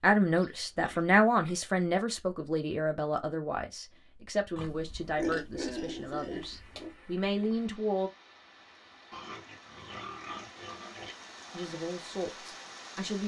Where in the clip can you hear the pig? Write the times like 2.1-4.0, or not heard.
0.3-1.8, 4.5-6.9, 9.1-11.2.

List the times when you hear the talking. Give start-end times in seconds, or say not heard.
0.0-8.1, 11.5-13.2.